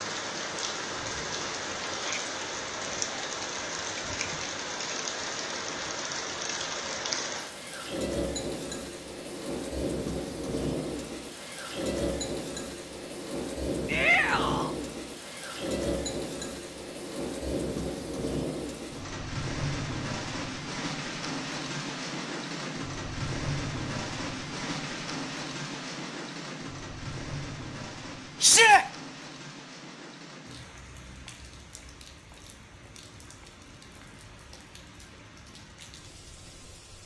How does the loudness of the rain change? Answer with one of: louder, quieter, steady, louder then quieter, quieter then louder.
quieter.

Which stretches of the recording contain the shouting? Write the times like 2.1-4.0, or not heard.
1.9-2.4, 13.8-14.8, 28.4-28.9.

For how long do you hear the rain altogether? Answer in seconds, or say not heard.
37 s.